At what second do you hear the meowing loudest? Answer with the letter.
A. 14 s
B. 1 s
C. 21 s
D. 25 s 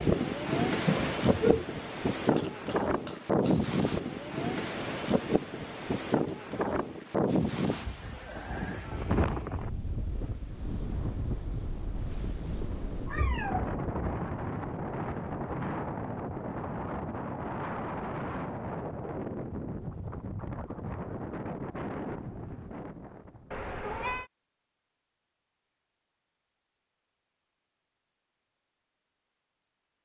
B.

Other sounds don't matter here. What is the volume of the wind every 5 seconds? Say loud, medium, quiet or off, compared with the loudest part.
loud, loud, medium, medium, medium, off.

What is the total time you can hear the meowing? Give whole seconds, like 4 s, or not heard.
3 s.